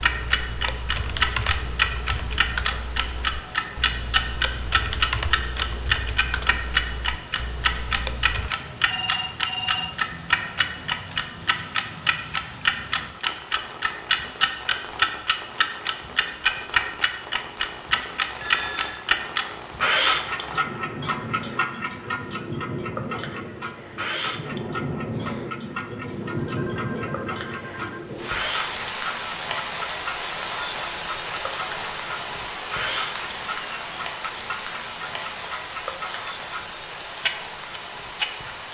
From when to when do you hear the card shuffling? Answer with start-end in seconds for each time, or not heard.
not heard.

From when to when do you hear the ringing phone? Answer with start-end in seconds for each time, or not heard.
8.8-9.9, 18.4-19.1, 26.4-28.1.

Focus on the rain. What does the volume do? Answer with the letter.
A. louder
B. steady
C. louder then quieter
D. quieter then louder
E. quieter
A.